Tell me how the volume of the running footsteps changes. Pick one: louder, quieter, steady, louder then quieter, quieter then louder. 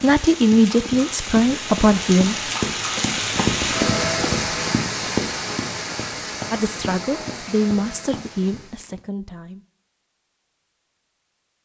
louder then quieter.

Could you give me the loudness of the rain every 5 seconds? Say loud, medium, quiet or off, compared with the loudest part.
loud, medium, off.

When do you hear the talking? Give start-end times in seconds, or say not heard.
0.0-2.4, 6.5-9.7.